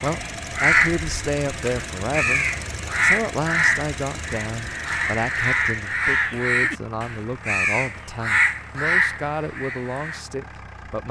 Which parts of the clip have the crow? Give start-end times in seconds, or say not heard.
0.0-10.2.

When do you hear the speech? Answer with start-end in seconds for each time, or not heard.
0.0-11.0.